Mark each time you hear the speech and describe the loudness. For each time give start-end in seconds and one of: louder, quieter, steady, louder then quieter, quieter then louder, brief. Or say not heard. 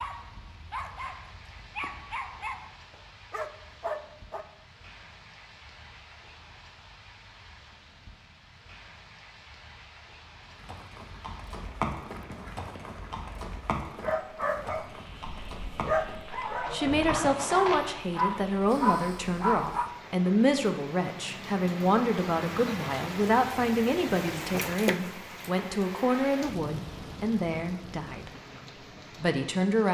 16.7-28.3 steady
29.2-29.8 brief.